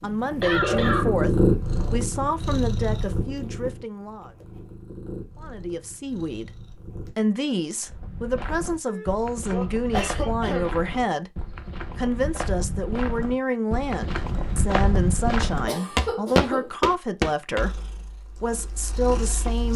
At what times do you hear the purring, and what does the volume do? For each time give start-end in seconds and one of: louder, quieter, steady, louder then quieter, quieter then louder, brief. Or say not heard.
0.0-7.1 quieter
17.6-19.7 brief.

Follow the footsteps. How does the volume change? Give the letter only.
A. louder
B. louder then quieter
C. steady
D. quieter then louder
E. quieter
A.